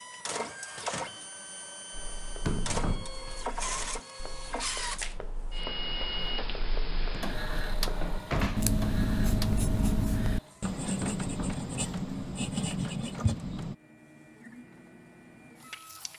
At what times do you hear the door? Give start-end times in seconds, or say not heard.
2.4-3.1, 7.1-8.8, 11.0-11.6.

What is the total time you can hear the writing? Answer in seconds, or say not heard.
12 s.